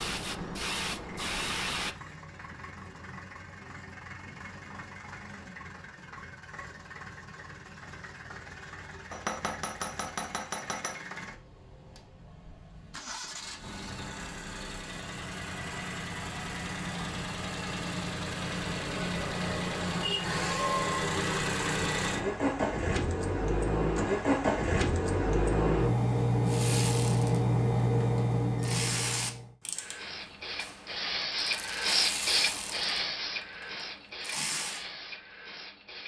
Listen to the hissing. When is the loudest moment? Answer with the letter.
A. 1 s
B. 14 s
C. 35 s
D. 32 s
D.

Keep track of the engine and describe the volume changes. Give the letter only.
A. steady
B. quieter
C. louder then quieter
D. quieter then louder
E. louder
E.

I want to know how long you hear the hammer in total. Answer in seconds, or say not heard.
2 s.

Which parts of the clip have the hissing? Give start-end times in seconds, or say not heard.
0.0-1.9, 29.8-36.0.